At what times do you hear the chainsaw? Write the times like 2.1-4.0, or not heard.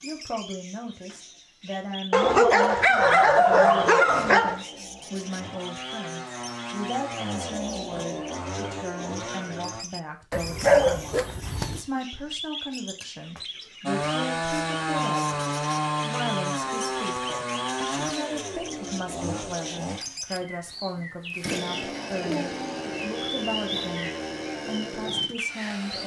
2.9-9.8, 13.8-26.0.